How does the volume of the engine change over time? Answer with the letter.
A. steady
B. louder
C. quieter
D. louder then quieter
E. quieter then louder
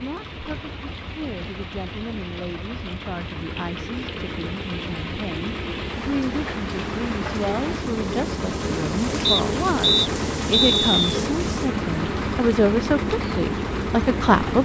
B.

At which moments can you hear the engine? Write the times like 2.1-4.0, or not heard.
0.0-14.6.